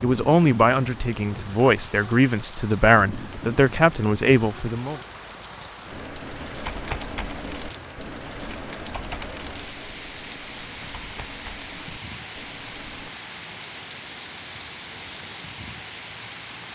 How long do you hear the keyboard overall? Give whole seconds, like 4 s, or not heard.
7 s.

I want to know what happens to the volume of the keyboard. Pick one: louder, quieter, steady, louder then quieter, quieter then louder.
quieter.